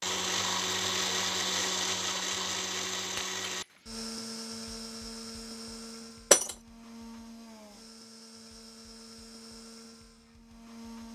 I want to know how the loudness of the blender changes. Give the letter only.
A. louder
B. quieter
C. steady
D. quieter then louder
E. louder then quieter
B.